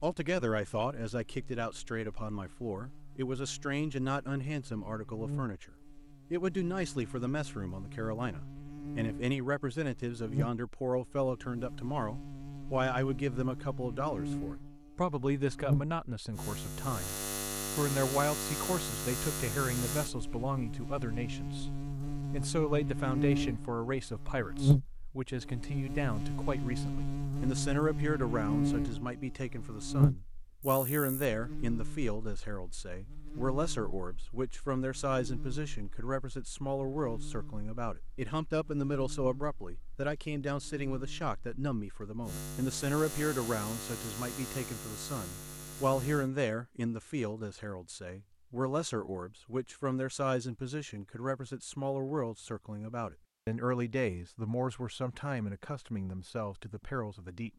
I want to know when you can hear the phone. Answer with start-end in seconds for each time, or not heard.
not heard.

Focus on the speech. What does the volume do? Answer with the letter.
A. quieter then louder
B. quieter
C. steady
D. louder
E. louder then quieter
C.